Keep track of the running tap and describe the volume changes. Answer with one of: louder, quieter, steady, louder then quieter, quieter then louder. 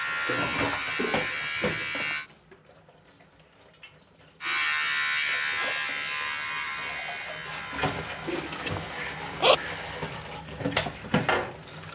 quieter then louder.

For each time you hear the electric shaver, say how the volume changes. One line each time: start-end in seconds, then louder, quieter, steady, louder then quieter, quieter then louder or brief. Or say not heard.
0.0-2.3 brief
4.4-10.2 quieter.